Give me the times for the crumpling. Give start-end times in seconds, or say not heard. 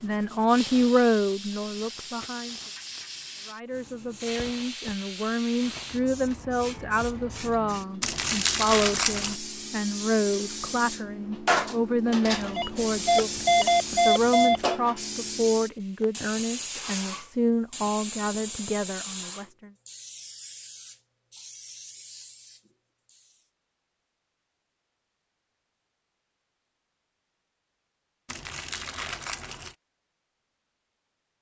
8.0-9.4, 28.2-29.8.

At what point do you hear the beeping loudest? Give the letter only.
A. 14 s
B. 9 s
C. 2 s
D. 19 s
A.